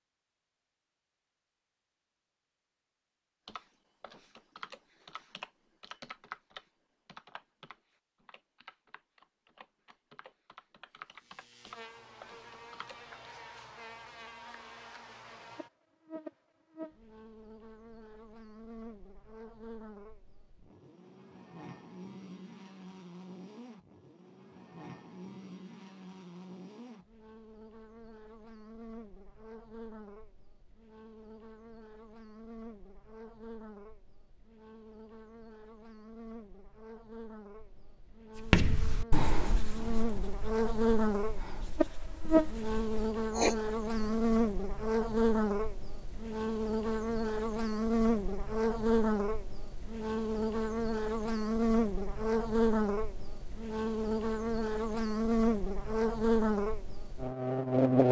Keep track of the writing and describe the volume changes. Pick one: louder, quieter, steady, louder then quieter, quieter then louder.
quieter then louder.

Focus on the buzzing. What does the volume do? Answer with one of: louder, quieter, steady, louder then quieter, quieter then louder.
louder.